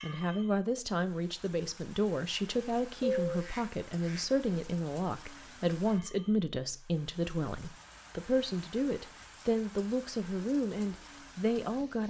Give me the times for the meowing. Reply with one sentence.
You can't hear the meowing here.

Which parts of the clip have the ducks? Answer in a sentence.
The ducks can be heard from 3.0 to 4.2 s.